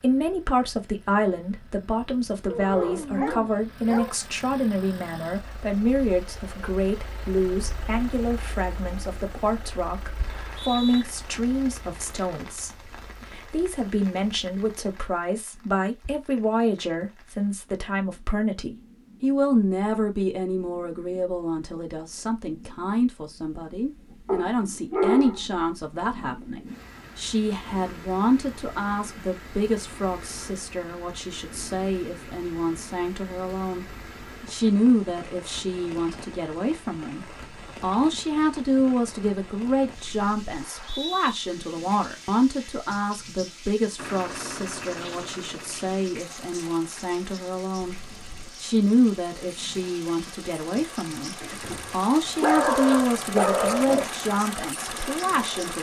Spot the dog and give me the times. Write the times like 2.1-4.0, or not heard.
2.5-4.2, 24.2-25.4, 51.4-54.1.